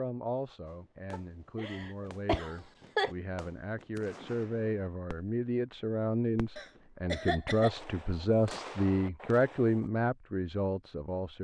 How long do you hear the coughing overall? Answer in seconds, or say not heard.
3 s.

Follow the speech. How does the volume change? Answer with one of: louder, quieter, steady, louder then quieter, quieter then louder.
louder.